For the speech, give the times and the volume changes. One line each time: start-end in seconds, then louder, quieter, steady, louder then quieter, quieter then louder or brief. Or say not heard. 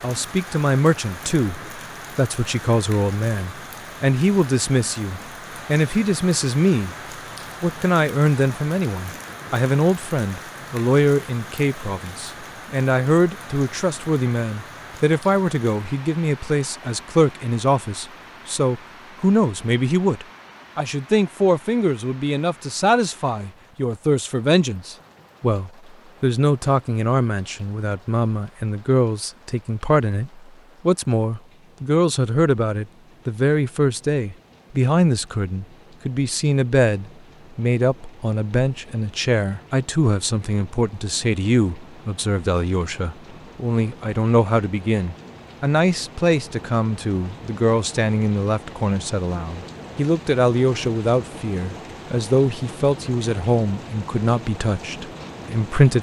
0.0-7.0 steady
7.6-55.9 steady.